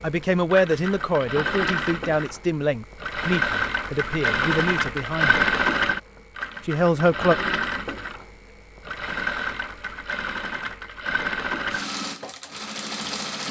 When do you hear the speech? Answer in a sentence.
You can hear the speech from 0.0 to 5.5 s and from 6.7 to 7.3 s.